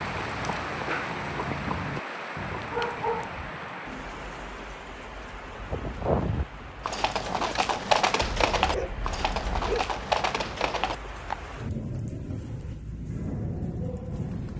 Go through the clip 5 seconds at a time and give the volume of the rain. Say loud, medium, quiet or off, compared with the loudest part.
loud, medium, loud.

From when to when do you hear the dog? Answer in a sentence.
You can hear the dog from 2.7 to 3.4 s and from 8.2 to 9.8 s.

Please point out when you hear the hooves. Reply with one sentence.
You can hear the hooves from 0.0 to 2.9 s and from 5.5 to 11.6 s.